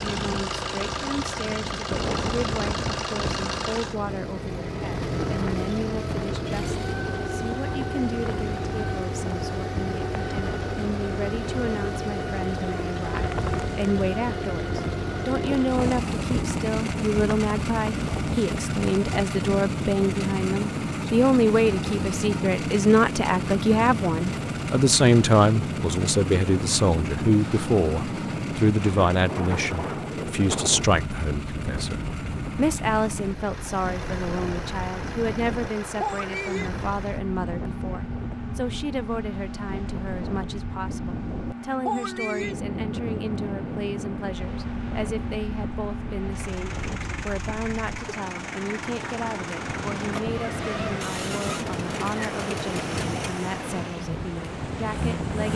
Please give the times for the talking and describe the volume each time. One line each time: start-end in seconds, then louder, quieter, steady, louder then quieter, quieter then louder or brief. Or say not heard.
0.0-55.5 louder then quieter.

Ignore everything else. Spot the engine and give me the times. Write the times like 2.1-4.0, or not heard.
0.0-55.5.